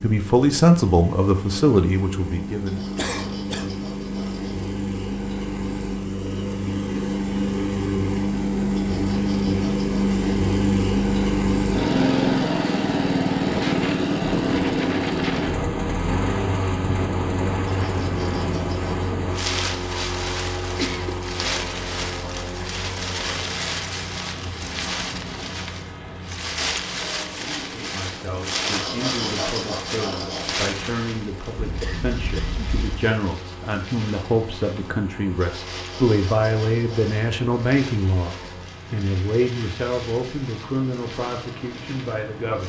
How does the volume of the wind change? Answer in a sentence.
The loudness of the wind goes down.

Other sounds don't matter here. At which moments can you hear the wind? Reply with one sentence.
The wind can be heard from 13.4 to 42.6 s.